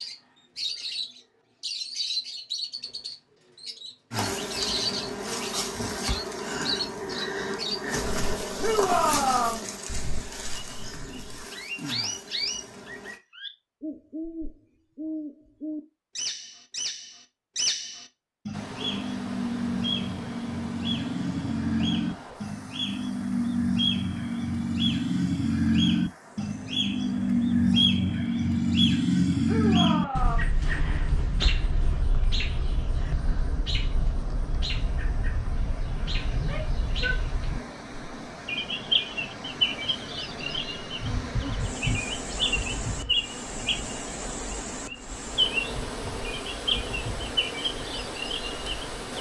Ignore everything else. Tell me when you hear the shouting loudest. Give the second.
9 s.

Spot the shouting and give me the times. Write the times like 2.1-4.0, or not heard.
8.6-9.7, 29.4-30.6, 36.4-37.7.